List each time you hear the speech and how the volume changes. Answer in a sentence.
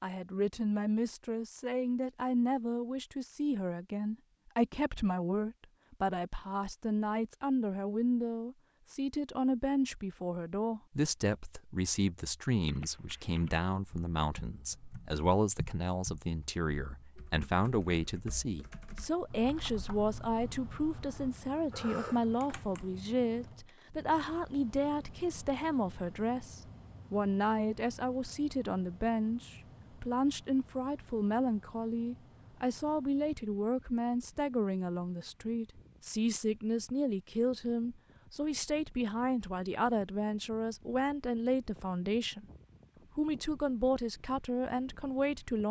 You can hear the speech from 0.0 to 42.5 s, at a steady volume; and briefly from 43.1 to 45.6 s.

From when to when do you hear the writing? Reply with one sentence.
The writing can't be heard in this clip.